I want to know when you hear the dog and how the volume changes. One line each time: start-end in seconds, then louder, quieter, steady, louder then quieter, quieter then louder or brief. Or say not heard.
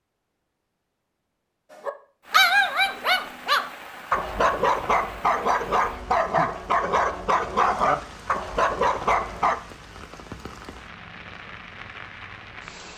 1.7-9.6 steady.